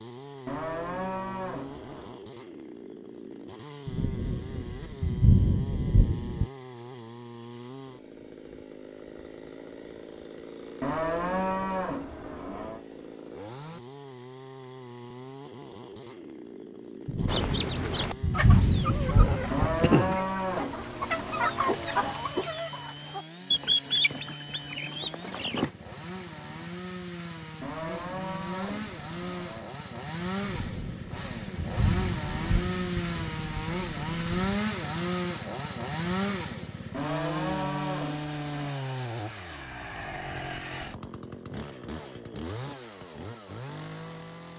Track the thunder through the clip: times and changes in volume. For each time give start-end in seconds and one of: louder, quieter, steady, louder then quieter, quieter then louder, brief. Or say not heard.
3.9-6.5 brief
17.1-20.0 brief
30.4-34.6 louder then quieter.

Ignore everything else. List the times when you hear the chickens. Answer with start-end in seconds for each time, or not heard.
17.2-25.7.